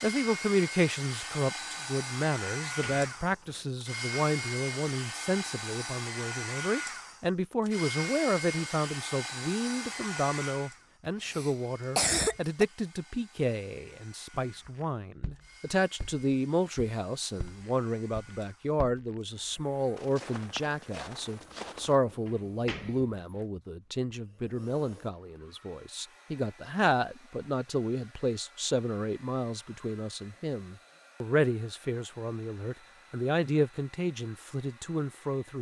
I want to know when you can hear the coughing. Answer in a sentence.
The coughing can be heard from 11.1 to 12.7 s.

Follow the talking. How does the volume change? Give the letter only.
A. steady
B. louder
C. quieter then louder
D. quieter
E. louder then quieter
A.